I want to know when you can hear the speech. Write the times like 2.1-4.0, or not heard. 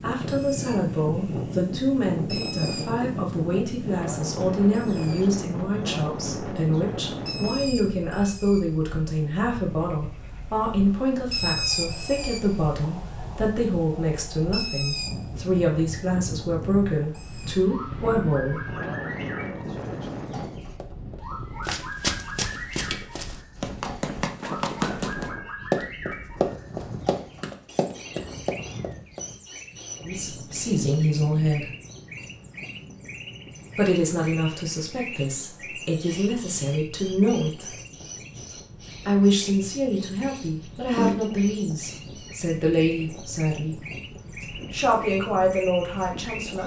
0.0-18.6, 30.0-31.7, 33.8-37.7, 39.0-43.8, 44.4-46.6.